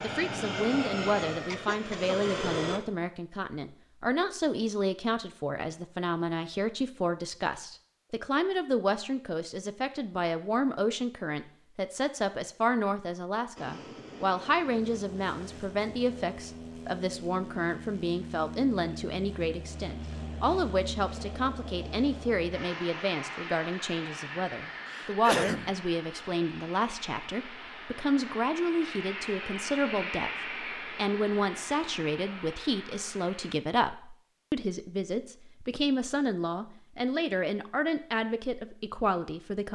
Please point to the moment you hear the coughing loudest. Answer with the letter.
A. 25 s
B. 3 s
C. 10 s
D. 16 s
A.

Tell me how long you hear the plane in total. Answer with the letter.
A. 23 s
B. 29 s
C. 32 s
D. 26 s
A.